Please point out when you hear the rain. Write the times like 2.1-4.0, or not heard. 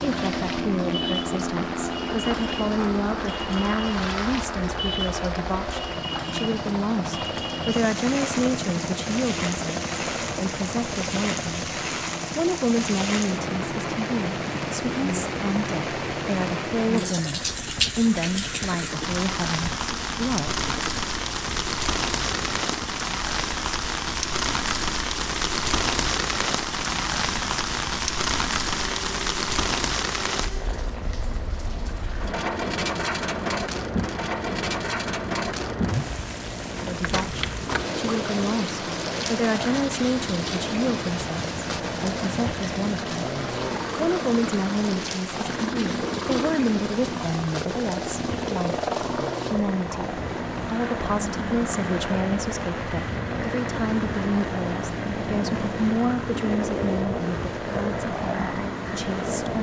0.0-59.5.